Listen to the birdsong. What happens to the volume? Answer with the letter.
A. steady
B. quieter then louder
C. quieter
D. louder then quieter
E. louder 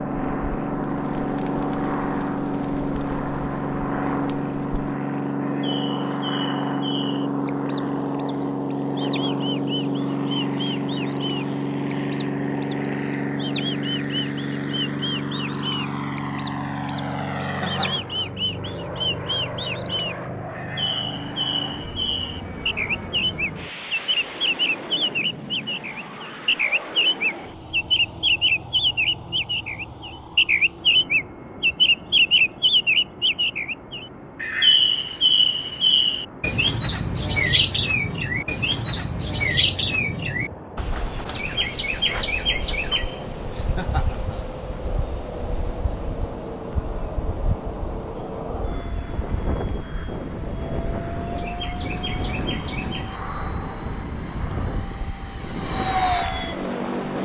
D.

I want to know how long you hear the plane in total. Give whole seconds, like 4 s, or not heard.
57 s.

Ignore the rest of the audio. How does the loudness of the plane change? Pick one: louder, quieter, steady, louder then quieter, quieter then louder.
quieter then louder.